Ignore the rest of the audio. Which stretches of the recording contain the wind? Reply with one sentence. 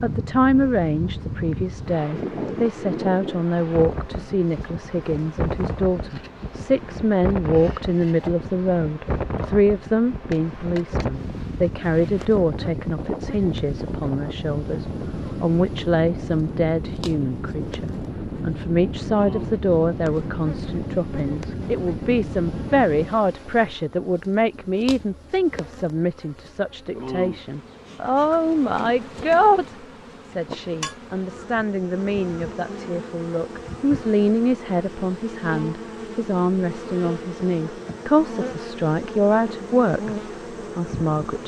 You can hear the wind from 0.0 to 23.1 s.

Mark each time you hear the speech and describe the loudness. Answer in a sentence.
You can hear the speech from 0.0 to 40.1 s, at a steady volume; and briefly from 40.8 to 41.4 s.